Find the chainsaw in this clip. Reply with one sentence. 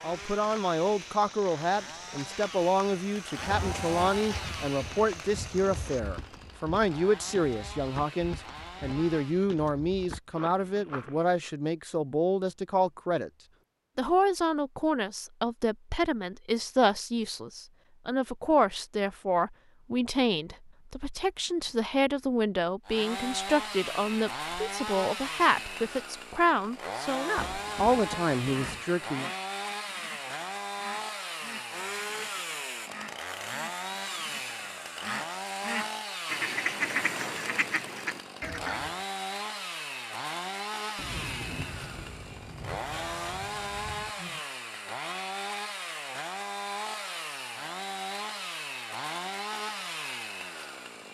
The chainsaw can be heard from 0.0 to 9.5 s and from 22.9 to 51.0 s.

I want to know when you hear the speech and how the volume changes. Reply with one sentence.
You can hear the speech from 0.0 to 13.3 s, at a steady volume; and from 13.9 to 29.3 s, at a steady volume.